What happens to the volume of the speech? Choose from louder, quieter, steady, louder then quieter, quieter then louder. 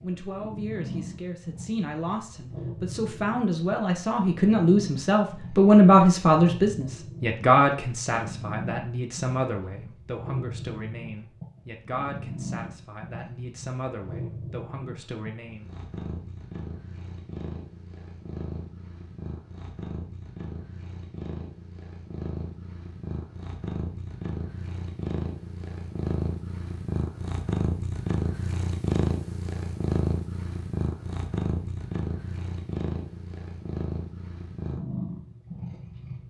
louder then quieter.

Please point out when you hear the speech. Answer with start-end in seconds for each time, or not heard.
0.0-15.7.